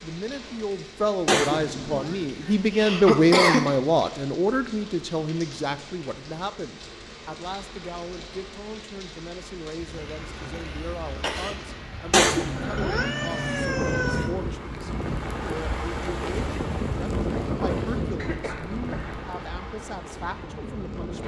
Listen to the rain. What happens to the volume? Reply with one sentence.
The loudness of the rain goes up.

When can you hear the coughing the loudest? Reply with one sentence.
The loudest moment of the coughing is at 3 seconds.